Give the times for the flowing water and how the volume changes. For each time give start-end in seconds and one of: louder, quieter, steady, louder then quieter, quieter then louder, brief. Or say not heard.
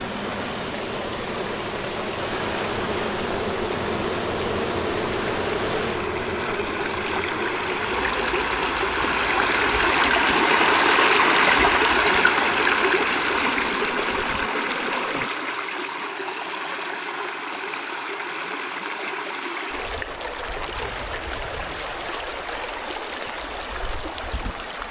0.0-24.8 louder then quieter.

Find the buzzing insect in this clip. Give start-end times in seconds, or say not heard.
0.0-15.3.